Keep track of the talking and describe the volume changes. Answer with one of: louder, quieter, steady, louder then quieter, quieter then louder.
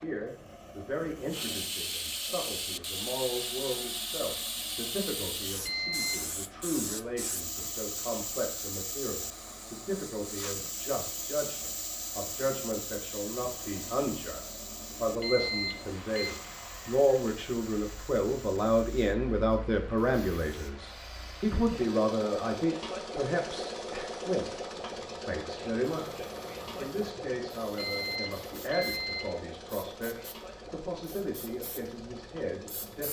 louder then quieter.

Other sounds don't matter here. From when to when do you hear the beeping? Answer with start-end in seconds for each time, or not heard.
5.7-6.3, 15.2-16.3, 27.8-29.4.